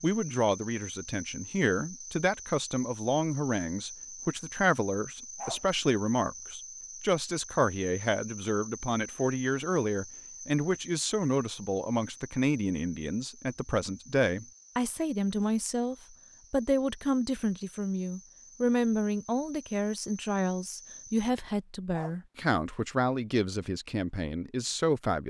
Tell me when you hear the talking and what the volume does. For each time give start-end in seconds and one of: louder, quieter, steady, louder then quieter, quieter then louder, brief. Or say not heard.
0.0-25.2 steady.